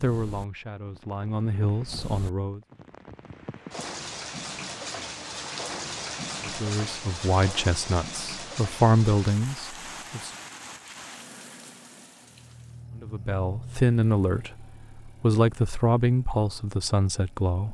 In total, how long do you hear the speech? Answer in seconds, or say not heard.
11 s.